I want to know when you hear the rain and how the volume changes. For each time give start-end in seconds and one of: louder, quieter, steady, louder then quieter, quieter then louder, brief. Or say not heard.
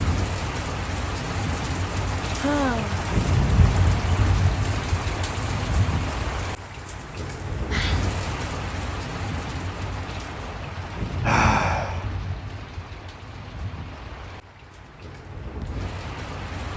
0.0-16.7 quieter.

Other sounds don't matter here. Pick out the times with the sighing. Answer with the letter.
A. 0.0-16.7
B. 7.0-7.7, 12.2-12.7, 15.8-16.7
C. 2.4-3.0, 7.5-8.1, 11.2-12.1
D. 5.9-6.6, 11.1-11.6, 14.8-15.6
C.